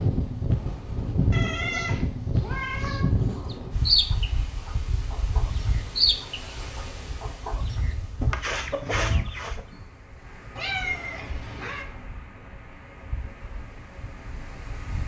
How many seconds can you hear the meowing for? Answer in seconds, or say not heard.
3 s.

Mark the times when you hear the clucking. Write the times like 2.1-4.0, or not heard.
3.5-9.6.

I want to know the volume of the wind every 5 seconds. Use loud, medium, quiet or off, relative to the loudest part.
loud, medium, quiet.